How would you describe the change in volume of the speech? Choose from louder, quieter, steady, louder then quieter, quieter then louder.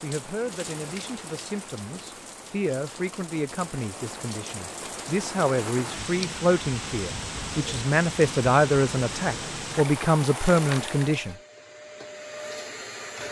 louder.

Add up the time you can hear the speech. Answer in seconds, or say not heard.
11 s.